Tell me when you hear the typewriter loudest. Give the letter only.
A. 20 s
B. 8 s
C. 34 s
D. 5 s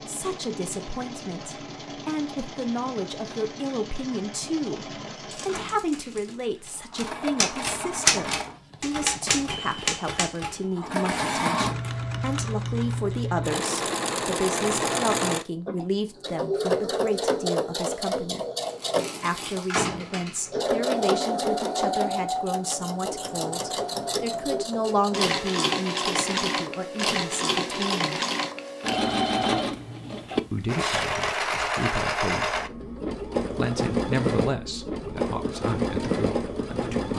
B.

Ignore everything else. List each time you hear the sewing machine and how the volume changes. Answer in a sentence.
You can hear the sewing machine from 0.0 to 37.1 s, getting louder.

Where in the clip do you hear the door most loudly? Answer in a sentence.
The volume of the door peaks at 20 seconds.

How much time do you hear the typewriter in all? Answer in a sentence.
The typewriter can be heard for 6 seconds in total.